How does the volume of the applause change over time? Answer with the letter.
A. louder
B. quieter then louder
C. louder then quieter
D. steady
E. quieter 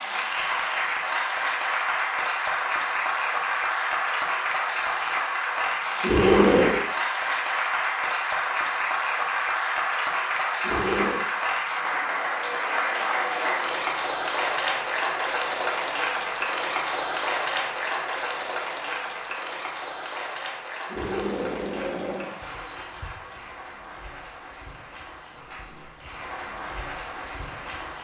E.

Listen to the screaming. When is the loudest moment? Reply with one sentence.
The volume of the screaming peaks at 6 seconds.